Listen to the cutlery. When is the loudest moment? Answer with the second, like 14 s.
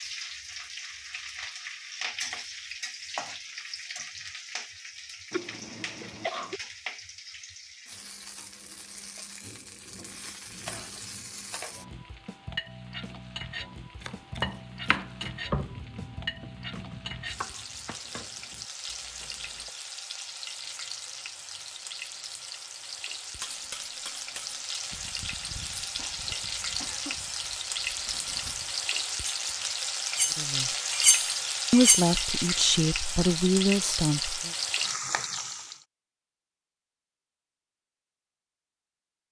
32 s.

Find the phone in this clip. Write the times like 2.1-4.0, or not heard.
not heard.